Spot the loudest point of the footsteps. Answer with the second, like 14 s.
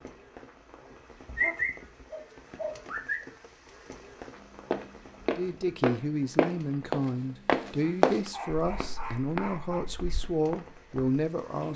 8 s.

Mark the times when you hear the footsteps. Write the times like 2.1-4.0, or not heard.
4.3-11.2.